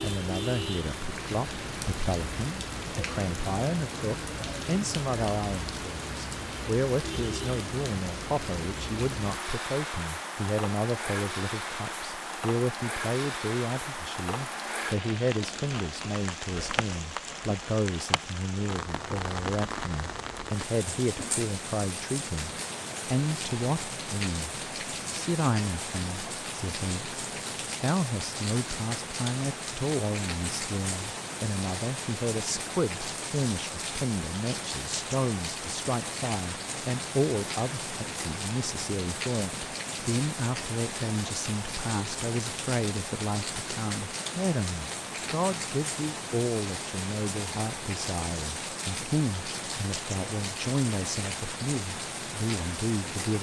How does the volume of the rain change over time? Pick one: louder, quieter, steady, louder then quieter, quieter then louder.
steady.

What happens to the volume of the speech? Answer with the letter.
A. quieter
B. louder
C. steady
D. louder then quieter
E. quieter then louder
C.